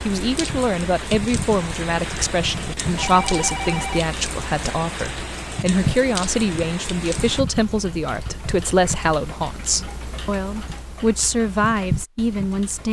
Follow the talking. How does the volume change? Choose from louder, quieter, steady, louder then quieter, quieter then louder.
steady.